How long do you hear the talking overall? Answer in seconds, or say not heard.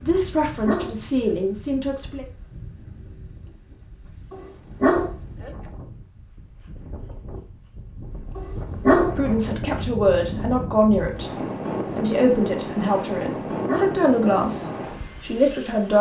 9 s.